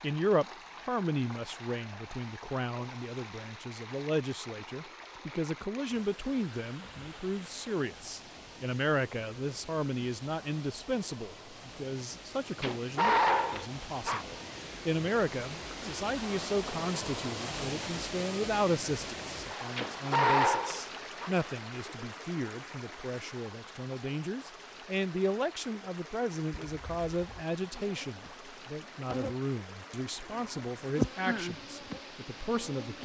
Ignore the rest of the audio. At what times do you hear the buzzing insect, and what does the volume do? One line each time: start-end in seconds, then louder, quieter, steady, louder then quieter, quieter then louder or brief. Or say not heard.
26.5-32.9 louder then quieter.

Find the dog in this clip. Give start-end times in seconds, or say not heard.
12.6-14.2, 19.8-21.3.